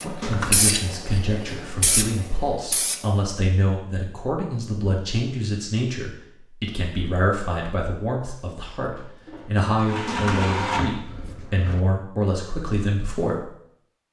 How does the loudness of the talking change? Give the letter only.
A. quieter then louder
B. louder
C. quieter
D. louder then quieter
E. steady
E.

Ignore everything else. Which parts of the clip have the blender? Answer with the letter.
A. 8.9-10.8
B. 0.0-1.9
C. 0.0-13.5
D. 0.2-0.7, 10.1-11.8
A.